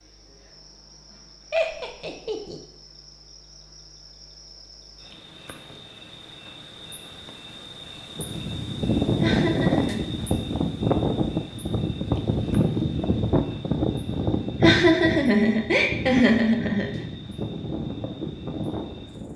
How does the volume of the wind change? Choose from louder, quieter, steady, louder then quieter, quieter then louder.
quieter.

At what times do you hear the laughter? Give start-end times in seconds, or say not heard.
1.5-2.6, 9.2-10.1, 14.6-17.1.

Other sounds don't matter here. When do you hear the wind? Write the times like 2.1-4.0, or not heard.
8.2-19.3.